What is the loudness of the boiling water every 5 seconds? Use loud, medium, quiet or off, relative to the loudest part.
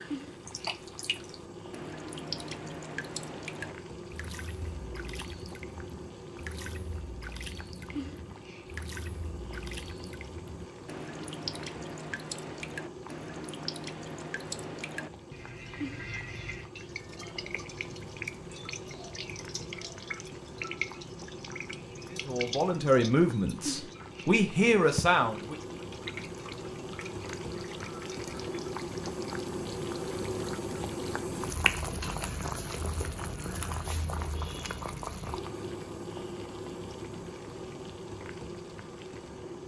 medium, medium, medium, medium, medium, loud, loud, medium.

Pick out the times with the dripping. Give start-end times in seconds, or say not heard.
0.0-30.9.